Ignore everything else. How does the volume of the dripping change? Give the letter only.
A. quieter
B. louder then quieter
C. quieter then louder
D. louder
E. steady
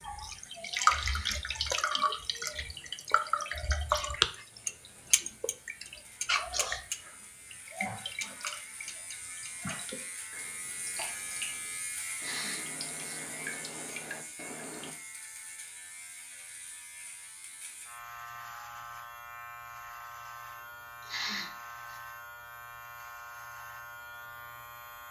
A.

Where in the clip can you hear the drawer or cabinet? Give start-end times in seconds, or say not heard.
not heard.